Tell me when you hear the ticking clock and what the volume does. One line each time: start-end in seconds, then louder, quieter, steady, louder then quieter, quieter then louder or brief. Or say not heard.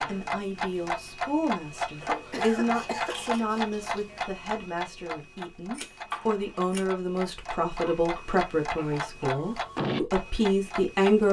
0.0-11.2 quieter then louder.